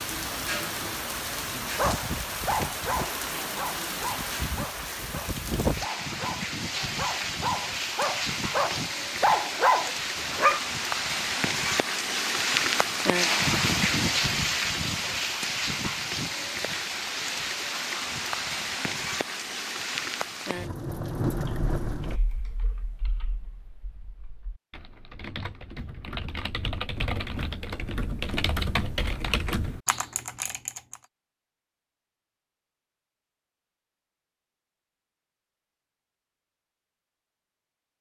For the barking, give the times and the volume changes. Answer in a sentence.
You can hear the barking from 1.8 to 10.6 s, getting quieter then louder.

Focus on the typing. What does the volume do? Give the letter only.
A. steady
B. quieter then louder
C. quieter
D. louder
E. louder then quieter
D.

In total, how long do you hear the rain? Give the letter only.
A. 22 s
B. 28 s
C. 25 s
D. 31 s
A.